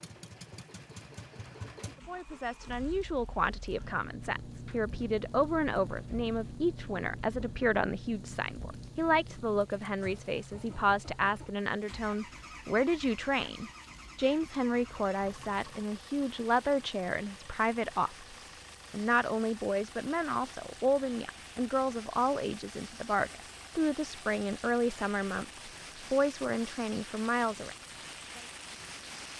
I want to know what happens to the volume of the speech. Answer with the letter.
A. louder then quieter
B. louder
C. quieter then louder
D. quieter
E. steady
E.